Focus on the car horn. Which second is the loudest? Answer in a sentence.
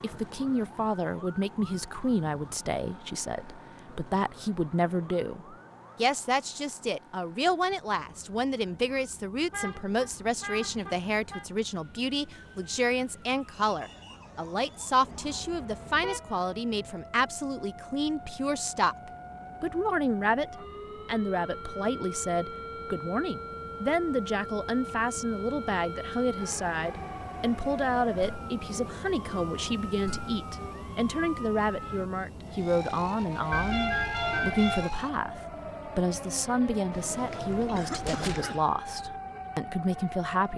The volume of the car horn peaks at 34 seconds.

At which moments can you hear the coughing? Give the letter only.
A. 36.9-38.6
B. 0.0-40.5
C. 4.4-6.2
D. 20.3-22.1
A.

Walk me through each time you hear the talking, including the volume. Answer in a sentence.
You can hear the talking from 0.0 to 40.5 s, at a steady volume.